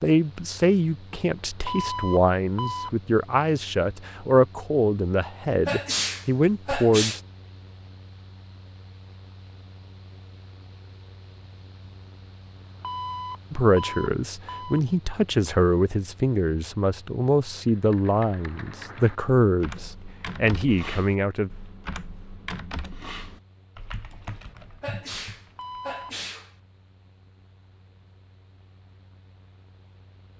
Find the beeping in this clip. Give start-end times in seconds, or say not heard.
1.6-2.9, 12.8-14.8, 25.6-26.1.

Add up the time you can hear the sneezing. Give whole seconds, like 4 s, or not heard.
3 s.